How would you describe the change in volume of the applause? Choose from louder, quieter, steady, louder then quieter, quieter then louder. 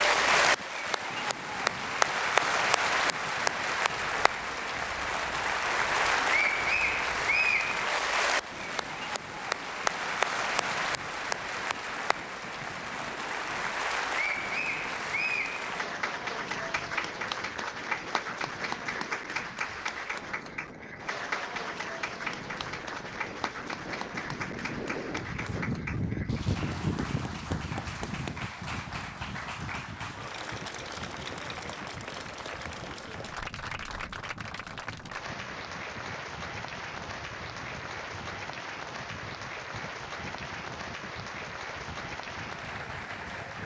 quieter.